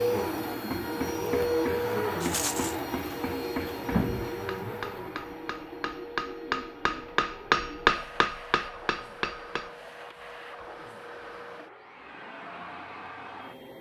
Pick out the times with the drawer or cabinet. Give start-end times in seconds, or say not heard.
not heard.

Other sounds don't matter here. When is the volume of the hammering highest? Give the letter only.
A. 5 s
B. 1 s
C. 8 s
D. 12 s
C.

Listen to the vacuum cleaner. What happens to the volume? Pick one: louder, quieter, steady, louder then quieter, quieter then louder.
quieter.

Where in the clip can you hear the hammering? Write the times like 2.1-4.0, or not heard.
0.7-9.7.